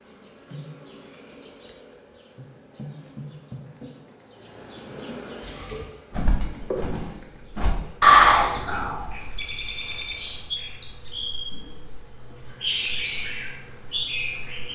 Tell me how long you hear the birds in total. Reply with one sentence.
The birds can be heard for 9 seconds in total.